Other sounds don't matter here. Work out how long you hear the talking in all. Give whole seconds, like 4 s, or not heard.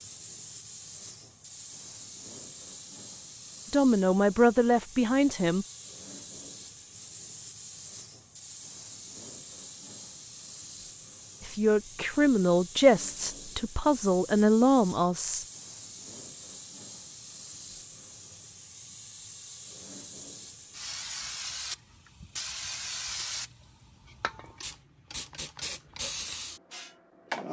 6 s.